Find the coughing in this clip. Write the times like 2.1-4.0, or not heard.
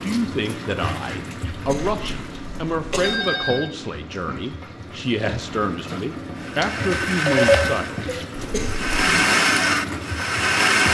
1.5-3.2, 8.3-8.9.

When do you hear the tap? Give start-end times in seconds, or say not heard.
0.0-10.8.